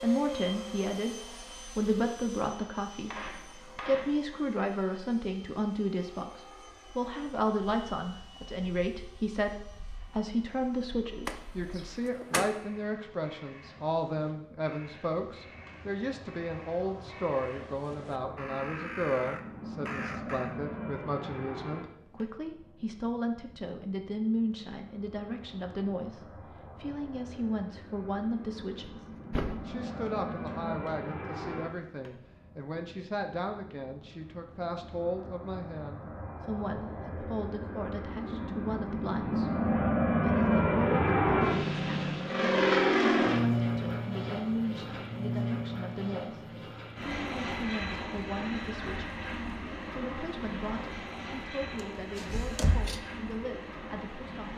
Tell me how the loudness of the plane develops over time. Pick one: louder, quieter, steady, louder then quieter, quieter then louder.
louder then quieter.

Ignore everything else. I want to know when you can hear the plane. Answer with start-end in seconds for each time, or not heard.
0.0-54.5.